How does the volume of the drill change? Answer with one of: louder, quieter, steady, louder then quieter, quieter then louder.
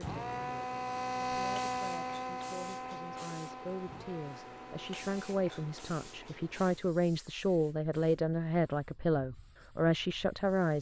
quieter.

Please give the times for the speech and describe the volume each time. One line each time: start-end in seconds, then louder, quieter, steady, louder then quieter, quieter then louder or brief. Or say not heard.
0.0-10.7 louder.